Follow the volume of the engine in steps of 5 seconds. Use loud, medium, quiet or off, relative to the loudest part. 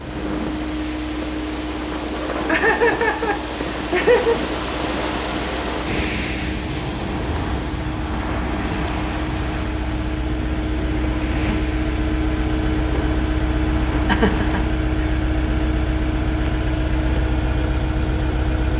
medium, medium, loud, loud.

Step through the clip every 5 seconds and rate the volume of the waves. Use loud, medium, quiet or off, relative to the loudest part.
loud, loud, medium, off.